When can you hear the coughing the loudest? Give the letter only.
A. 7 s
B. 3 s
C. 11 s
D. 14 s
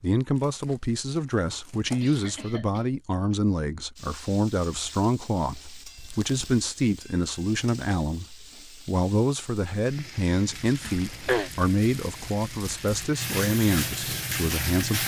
C.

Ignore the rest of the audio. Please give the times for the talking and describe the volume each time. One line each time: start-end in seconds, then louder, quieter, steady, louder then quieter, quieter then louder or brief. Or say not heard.
0.0-15.0 steady.